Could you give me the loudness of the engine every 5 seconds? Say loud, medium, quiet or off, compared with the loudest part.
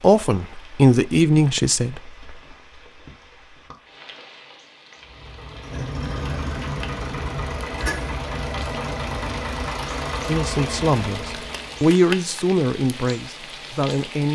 off, loud, loud.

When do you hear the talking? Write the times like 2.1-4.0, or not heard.
0.0-2.1, 10.2-14.3.